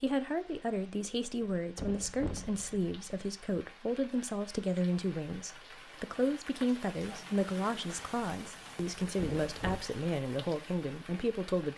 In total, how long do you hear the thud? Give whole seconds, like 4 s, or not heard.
3 s.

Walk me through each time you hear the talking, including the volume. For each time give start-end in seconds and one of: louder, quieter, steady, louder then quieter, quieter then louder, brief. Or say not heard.
0.0-11.7 steady.